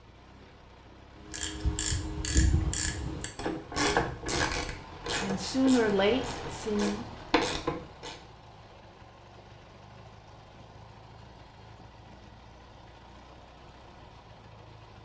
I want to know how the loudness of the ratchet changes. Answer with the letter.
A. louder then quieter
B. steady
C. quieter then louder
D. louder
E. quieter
C.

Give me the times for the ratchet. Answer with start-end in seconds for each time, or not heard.
1.3-8.2.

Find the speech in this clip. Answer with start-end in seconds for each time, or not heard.
5.2-7.0.